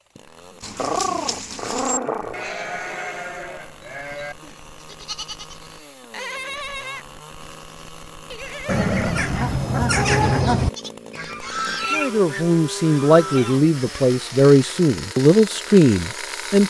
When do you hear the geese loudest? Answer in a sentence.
The volume of the geese peaks at 10 seconds.